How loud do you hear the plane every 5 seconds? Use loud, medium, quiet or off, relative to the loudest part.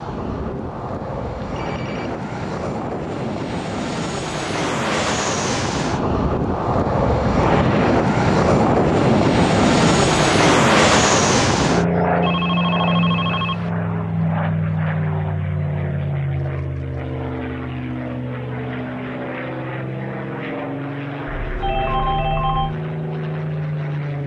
medium, loud, loud, medium, medium.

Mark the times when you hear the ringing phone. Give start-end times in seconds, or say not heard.
0.1-2.1, 12.2-13.7, 21.4-22.8.